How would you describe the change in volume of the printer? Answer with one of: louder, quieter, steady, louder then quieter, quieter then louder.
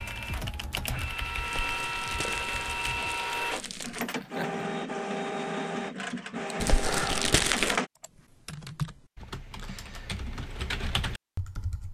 steady.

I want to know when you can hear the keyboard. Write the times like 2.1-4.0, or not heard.
0.0-3.1, 8.0-11.8.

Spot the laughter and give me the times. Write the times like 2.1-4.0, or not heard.
4.0-4.7.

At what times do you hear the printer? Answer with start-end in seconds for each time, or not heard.
0.0-7.9.